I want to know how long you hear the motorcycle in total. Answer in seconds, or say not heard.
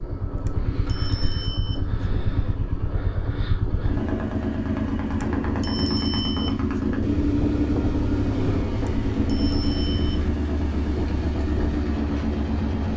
13 s.